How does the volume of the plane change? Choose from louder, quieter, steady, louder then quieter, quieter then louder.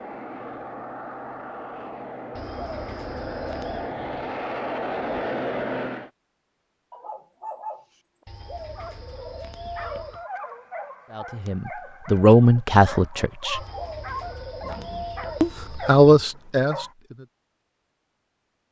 louder.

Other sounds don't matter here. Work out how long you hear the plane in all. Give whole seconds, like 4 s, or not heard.
6 s.